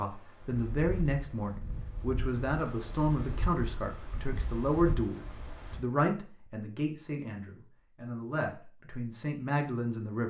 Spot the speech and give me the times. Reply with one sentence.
You can hear the speech from 0.0 to 10.2 s.